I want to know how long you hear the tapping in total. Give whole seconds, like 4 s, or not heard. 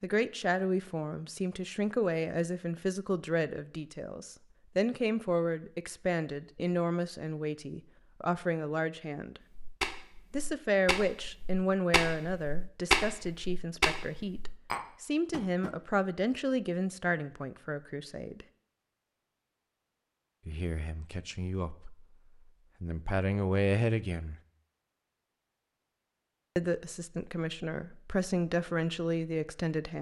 6 s.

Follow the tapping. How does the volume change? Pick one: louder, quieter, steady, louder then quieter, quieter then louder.
louder then quieter.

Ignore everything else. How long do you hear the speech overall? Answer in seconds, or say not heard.
24 s.